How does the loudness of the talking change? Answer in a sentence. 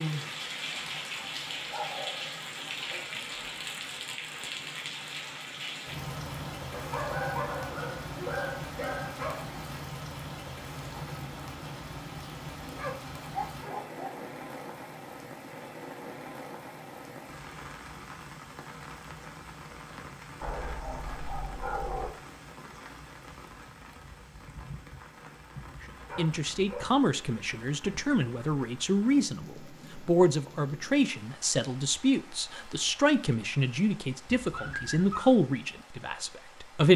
The volume of the talking stays about the same.